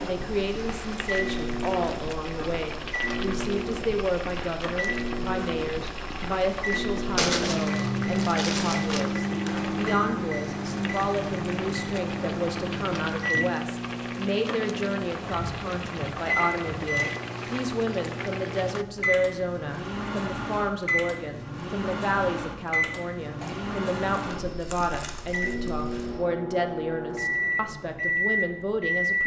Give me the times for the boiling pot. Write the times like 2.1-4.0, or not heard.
0.0-18.9.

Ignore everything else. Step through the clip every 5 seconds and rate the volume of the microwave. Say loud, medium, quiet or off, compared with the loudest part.
medium, loud, loud, loud, loud, loud.